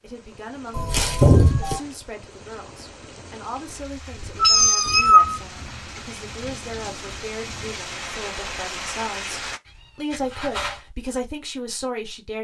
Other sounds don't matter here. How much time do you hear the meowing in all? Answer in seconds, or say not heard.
3 s.